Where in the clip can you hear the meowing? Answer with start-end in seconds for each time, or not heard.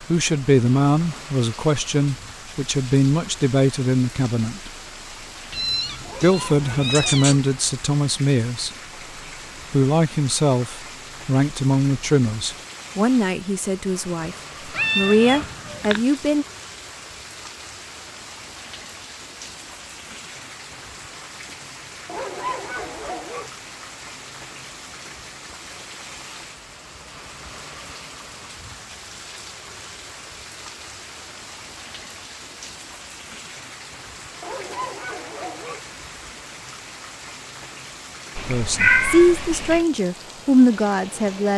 5.5-7.4, 14.8-16.0, 38.4-39.9.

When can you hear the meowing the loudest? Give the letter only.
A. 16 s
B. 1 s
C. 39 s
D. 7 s
C.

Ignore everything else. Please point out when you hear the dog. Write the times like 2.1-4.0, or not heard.
6.0-7.3, 22.1-23.5, 34.4-35.8.